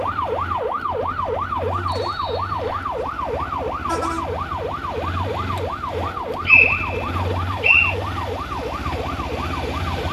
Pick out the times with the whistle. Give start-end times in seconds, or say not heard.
1.9-2.9, 6.5-8.0.